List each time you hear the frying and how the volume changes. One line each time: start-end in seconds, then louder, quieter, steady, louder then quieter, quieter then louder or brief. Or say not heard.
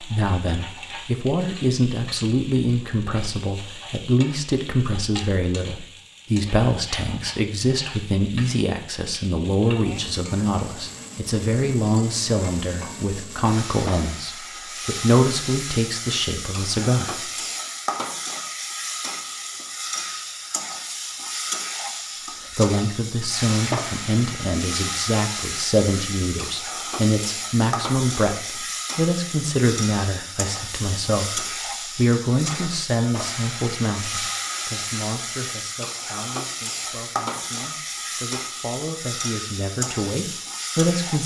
0.0-41.2 louder.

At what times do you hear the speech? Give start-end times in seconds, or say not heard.
0.0-17.3, 22.6-41.2.